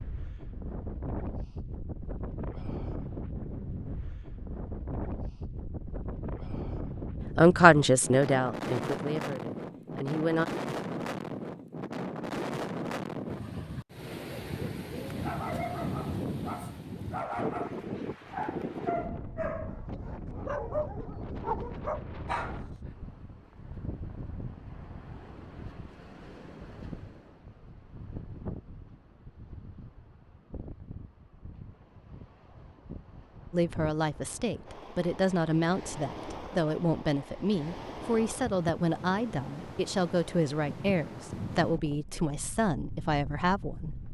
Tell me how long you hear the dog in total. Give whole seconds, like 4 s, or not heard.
8 s.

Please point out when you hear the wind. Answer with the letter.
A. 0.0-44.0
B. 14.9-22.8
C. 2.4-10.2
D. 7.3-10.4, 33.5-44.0
A.